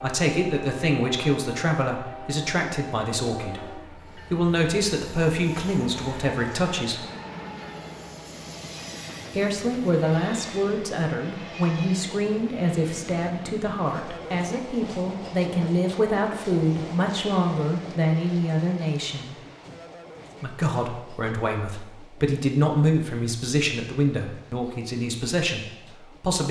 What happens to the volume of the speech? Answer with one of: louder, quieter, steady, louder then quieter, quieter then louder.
steady.